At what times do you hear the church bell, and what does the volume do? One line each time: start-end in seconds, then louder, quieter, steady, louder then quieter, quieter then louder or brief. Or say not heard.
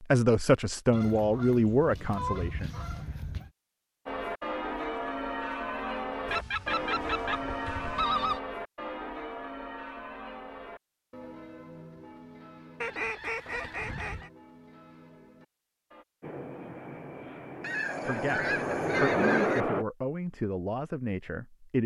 4.0-16.1 quieter.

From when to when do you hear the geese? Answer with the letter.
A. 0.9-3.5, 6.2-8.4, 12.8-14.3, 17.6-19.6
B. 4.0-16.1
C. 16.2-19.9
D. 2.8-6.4
A.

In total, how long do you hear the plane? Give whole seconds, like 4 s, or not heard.
4 s.